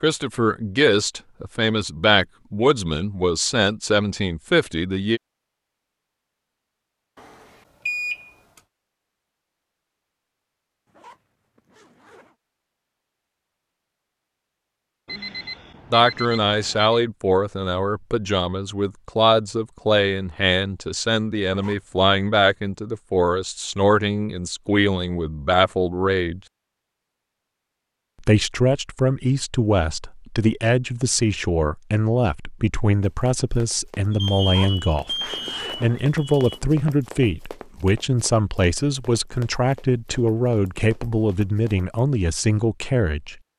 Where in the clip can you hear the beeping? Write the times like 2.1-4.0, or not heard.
7.2-8.6, 15.1-16.9, 34.1-36.6.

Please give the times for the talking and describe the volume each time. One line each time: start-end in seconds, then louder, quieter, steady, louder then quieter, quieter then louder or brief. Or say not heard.
0.0-5.2 steady
15.9-26.4 steady
28.2-43.4 steady.